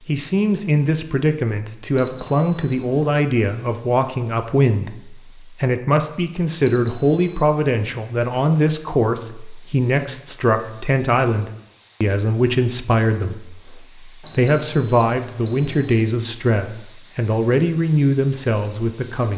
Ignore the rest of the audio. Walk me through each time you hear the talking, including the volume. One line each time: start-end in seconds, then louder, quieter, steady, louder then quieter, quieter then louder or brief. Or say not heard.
0.1-19.3 steady.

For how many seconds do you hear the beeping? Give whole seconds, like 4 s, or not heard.
4 s.